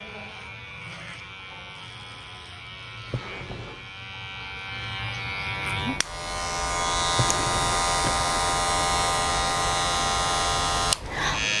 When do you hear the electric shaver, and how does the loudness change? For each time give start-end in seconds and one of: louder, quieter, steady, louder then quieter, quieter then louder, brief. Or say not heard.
0.0-11.5 louder.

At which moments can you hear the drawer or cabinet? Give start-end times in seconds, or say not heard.
3.0-3.9, 7.1-8.3.